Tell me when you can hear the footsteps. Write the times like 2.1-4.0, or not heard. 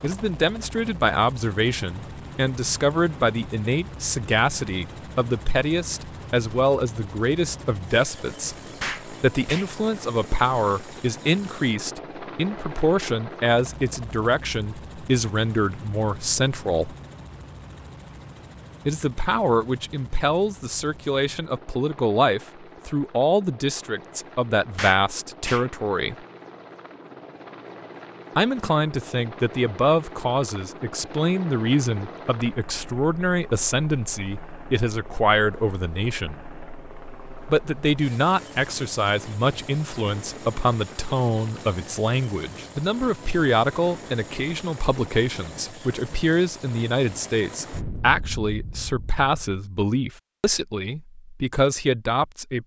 not heard.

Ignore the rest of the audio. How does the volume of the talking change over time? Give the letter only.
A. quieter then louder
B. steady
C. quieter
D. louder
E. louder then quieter
B.